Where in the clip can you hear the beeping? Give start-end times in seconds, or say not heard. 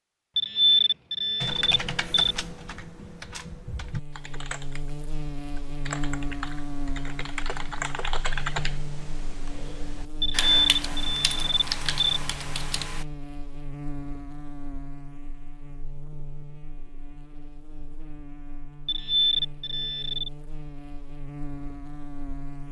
0.3-2.4, 10.2-12.2, 18.9-20.3.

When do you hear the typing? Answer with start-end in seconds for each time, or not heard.
1.4-13.1.